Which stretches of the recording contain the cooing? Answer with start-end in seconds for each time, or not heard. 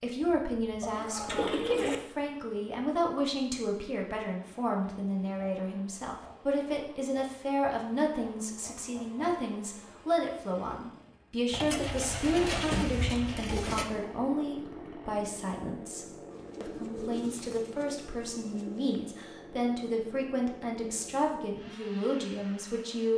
0.8-1.9, 11.5-13.9, 16.3-19.0.